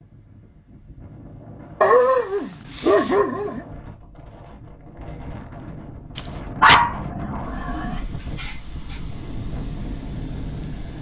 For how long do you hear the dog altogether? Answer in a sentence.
The dog can be heard for 4 seconds in total.